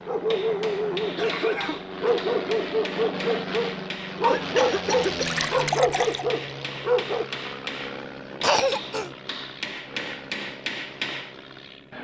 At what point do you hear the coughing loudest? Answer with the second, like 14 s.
9 s.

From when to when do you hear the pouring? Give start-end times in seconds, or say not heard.
5.0-6.2.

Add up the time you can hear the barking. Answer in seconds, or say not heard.
7 s.